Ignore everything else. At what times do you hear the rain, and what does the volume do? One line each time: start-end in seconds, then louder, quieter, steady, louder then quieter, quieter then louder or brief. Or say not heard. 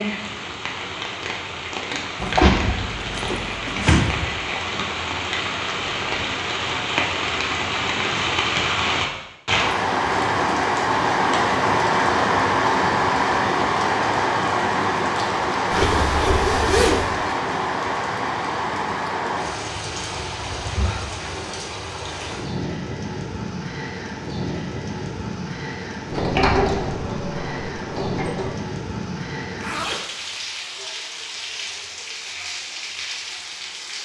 0.0-33.9 louder then quieter.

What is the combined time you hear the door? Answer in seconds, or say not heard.
5 s.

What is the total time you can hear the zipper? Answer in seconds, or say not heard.
4 s.